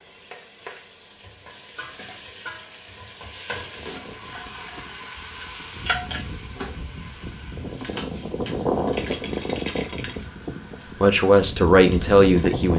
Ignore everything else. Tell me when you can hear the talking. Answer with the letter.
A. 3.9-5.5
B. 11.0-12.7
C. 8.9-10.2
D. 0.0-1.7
B.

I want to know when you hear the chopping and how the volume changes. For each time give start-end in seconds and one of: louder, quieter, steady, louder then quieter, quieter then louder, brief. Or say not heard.
not heard.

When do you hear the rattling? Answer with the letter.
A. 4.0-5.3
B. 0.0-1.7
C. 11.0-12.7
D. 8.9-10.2
D.